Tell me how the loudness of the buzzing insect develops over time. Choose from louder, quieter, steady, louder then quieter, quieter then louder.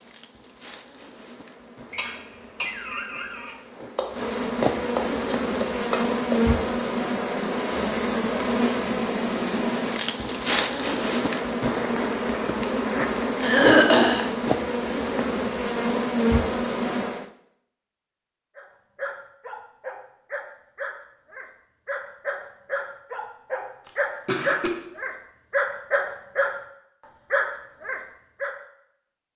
louder.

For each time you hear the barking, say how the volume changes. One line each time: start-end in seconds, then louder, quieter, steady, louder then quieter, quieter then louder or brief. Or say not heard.
18.6-26.6 louder
27.3-28.6 brief.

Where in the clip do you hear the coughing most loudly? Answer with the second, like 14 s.
14 s.